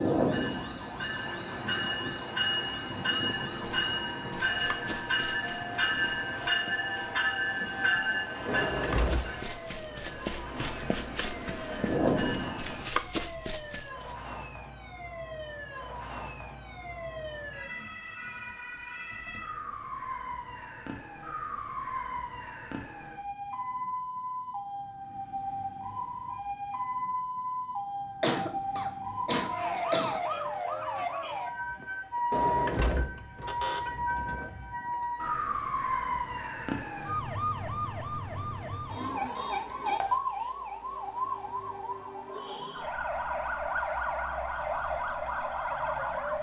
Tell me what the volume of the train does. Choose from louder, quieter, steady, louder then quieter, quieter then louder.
steady.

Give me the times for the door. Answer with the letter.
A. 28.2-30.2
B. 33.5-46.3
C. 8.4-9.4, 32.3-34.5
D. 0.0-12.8
C.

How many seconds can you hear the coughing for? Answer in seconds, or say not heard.
2 s.